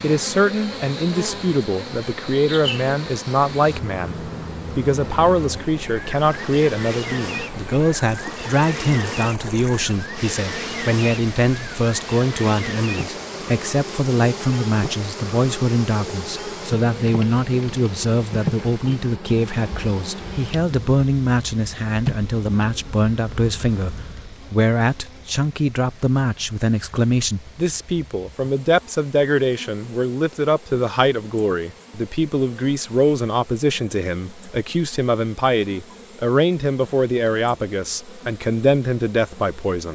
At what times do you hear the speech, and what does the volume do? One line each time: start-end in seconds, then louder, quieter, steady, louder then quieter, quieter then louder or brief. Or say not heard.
0.0-39.9 steady.